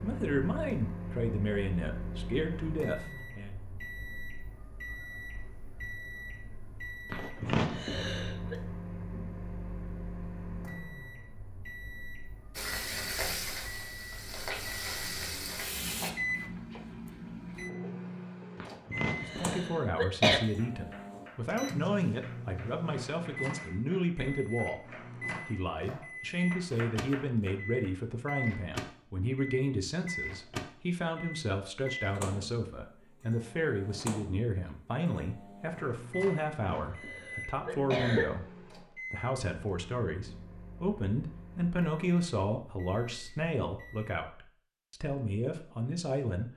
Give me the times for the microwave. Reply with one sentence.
You can hear the microwave from 0.0 to 44.2 s.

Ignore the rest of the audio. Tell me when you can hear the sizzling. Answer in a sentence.
The sizzling can be heard from 12.6 to 16.1 s.